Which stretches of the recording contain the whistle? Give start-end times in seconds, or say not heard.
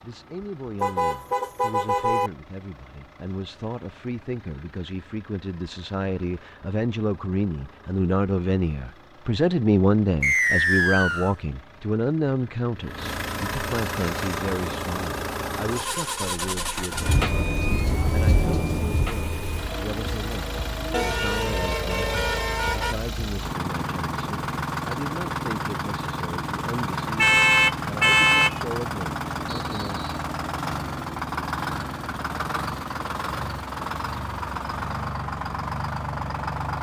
10.2-11.3, 29.5-30.1.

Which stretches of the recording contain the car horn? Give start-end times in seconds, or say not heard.
0.8-2.3, 20.9-22.9, 27.1-28.6.